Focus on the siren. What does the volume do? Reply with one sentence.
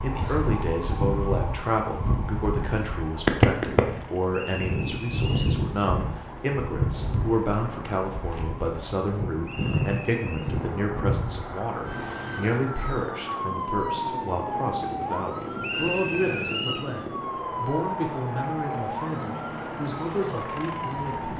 The volume of the siren goes down.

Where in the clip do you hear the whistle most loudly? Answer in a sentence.
The loudest moment of the whistle is at 16 seconds.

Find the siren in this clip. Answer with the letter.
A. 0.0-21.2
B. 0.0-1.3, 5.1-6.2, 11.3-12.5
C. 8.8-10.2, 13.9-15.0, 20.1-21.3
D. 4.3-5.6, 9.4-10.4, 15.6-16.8
A.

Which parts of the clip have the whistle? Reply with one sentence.
You can hear the whistle from 4.3 to 5.6 s, from 9.4 to 10.4 s and from 15.6 to 16.8 s.